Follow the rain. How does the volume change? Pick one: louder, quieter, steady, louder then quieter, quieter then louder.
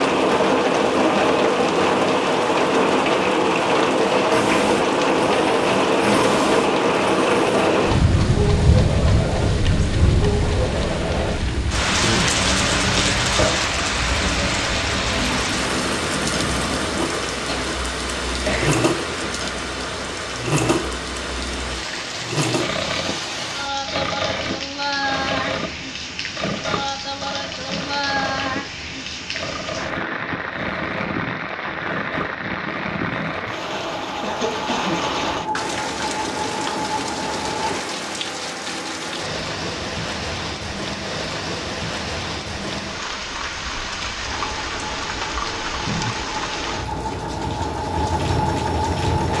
quieter.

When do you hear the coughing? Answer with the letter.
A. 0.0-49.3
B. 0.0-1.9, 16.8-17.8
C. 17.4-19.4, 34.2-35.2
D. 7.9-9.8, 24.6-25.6
C.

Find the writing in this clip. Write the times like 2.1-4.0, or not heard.
not heard.